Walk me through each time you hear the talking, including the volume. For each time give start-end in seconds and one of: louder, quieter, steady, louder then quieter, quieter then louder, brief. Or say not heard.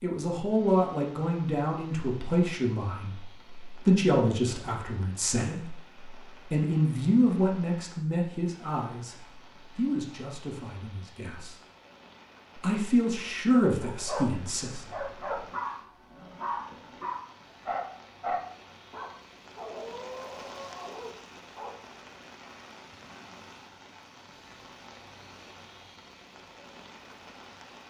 0.0-11.6 quieter
12.6-14.8 brief.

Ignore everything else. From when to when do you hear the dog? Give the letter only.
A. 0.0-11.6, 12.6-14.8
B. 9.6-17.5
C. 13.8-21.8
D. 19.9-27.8
C.